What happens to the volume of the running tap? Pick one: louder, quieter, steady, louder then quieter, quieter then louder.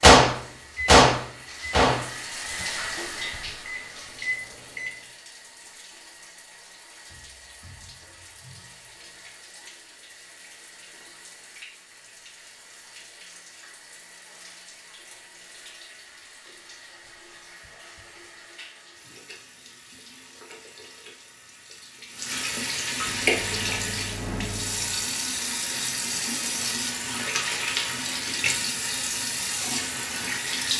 quieter then louder.